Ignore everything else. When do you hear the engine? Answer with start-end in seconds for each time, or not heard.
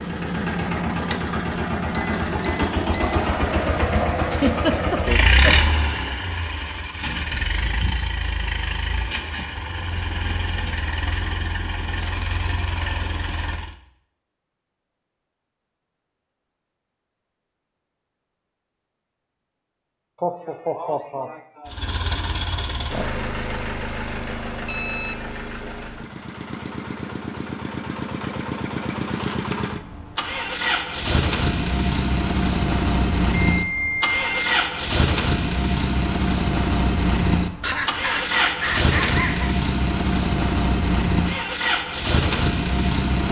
0.0-13.8, 21.6-43.2.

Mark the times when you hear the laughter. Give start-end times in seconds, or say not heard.
4.3-5.7, 20.2-21.7, 37.6-39.5.